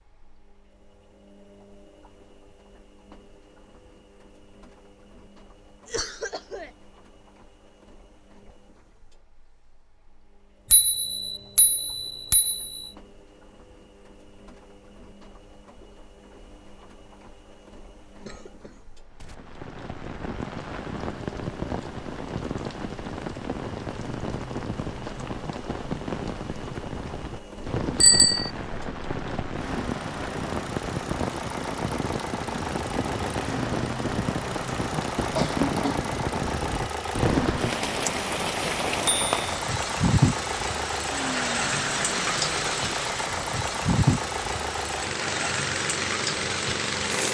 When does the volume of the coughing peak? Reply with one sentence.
The loudest moment of the coughing is at 36 seconds.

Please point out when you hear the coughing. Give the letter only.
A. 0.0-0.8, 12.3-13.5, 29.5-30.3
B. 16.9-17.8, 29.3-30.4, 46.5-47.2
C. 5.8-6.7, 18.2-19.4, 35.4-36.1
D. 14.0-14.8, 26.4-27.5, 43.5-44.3
C.